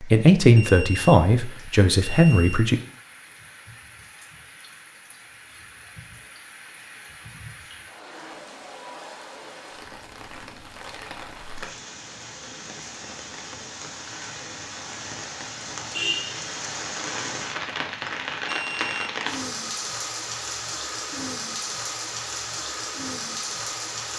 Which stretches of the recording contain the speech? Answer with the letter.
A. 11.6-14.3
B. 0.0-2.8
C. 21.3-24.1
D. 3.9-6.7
B.